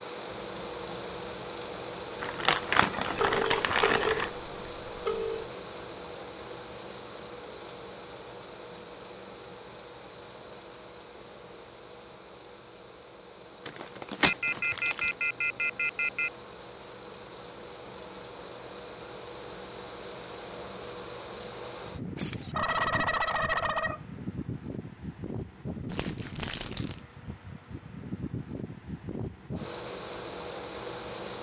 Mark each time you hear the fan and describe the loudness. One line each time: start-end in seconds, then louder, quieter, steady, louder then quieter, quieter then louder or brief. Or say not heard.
0.0-31.3 quieter then louder.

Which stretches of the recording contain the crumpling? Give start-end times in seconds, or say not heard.
2.2-4.3, 13.7-15.1, 25.9-27.0.